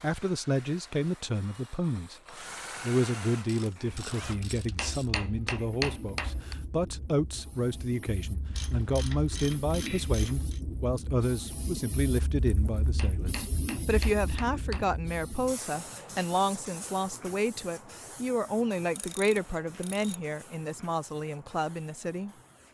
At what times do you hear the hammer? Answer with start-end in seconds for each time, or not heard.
4.8-6.5, 12.9-14.9.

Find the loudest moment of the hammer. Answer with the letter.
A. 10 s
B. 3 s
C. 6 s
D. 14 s
C.